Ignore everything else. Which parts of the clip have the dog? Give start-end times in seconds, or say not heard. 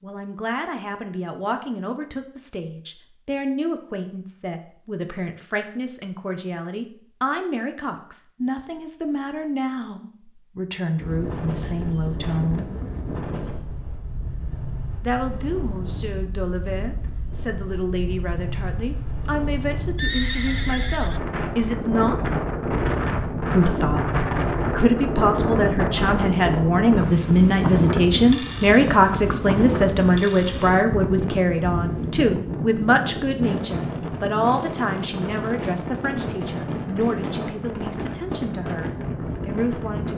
not heard.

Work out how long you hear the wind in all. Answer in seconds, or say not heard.
29 s.